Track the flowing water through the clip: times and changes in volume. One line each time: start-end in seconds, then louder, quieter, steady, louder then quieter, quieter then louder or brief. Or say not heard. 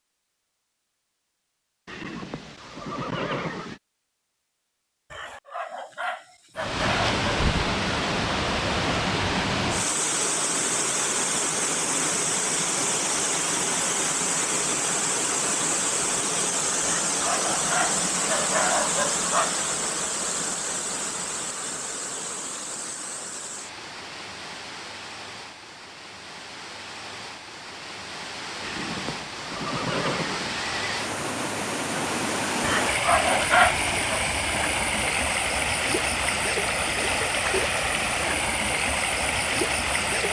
6.5-40.2 quieter then louder.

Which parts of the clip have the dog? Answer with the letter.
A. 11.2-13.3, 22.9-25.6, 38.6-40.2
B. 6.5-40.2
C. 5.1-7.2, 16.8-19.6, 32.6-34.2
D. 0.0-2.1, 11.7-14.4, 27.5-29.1
C.